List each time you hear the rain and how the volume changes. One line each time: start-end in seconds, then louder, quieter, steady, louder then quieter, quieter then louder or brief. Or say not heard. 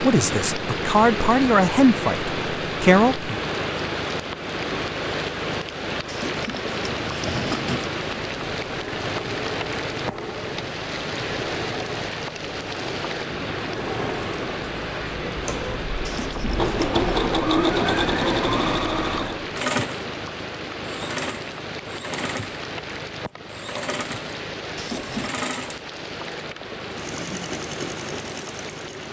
0.0-29.0 quieter.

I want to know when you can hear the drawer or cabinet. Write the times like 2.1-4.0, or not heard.
6.0-7.9, 16.1-17.1, 24.8-25.4.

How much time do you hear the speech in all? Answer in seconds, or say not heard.
3 s.